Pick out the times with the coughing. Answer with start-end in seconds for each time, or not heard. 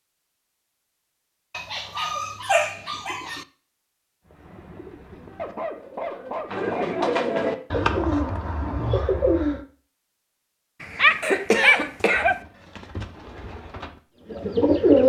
11.2-12.2.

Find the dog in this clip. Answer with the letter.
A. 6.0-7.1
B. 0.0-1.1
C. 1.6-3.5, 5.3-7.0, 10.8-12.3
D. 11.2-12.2
C.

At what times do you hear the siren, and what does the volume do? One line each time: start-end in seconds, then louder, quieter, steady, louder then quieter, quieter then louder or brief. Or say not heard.
not heard.